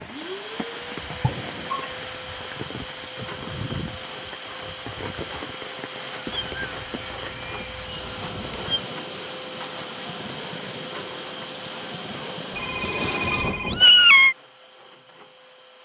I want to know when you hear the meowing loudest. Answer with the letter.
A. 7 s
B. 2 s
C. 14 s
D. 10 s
C.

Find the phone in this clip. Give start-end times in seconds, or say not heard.
12.5-13.8.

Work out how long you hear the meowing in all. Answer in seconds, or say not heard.
4 s.